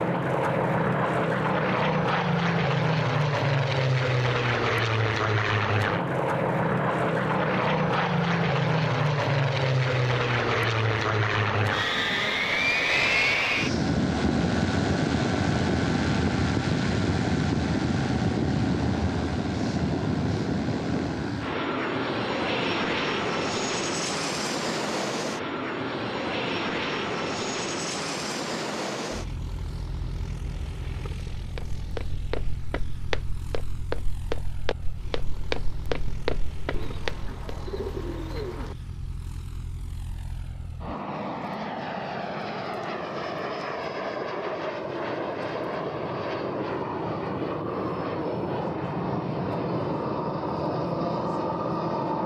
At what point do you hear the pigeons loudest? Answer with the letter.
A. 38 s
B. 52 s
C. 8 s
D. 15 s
A.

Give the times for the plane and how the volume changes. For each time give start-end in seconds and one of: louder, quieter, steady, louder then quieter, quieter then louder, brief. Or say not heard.
0.0-52.2 quieter then louder.